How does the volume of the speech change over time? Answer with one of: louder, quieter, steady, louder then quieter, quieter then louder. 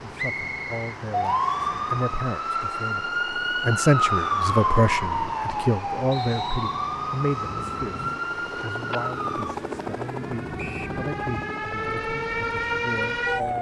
louder then quieter.